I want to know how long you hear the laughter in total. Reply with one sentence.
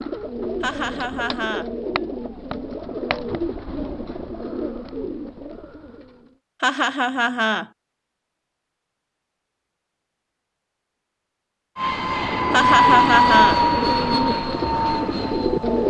You can hear the laughter for 3 seconds altogether.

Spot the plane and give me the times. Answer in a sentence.
The plane can be heard from 11.8 to 15.8 s.